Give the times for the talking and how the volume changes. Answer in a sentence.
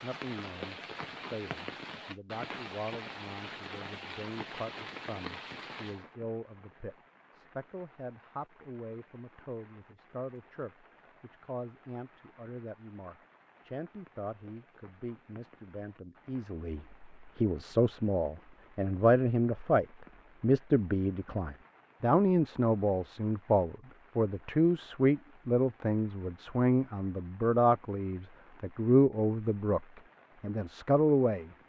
You can hear the talking from 0.0 to 29.8 s, getting louder; and briefly from 30.4 to 31.5 s.